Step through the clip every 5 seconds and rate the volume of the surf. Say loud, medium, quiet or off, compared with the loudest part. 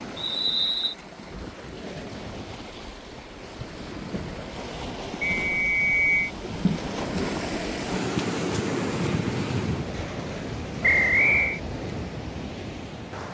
medium, loud, medium.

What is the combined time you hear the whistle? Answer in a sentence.
The whistle can be heard for 3 seconds in total.